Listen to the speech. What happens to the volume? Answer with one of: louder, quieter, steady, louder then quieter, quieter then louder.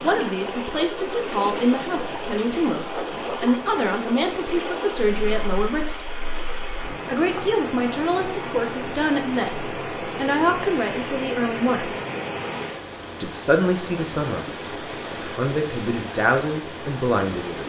steady.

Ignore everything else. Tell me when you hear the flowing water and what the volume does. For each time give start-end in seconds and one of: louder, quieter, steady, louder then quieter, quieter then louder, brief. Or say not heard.
0.0-17.6 steady.